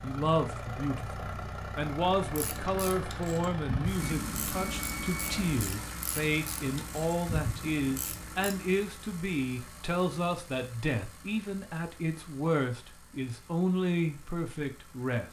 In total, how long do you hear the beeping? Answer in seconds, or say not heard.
2 s.